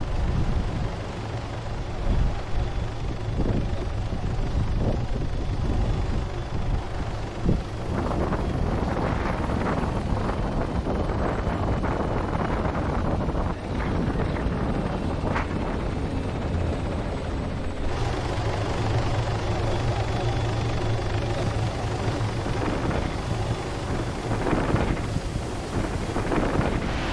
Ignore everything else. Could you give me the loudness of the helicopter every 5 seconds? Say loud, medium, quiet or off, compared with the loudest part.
medium, medium, medium, loud, loud, medium.